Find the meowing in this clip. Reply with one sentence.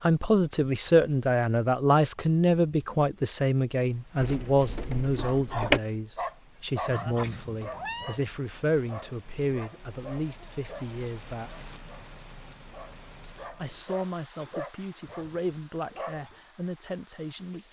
You can hear the meowing from 6.8 to 8.2 s.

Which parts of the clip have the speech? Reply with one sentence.
The speech can be heard from 0.0 to 11.7 s and from 13.2 to 17.6 s.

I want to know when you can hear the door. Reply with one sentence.
You can hear the door from 4.2 to 5.8 s.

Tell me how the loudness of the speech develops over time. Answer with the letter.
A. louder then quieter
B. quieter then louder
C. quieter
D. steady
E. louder
C.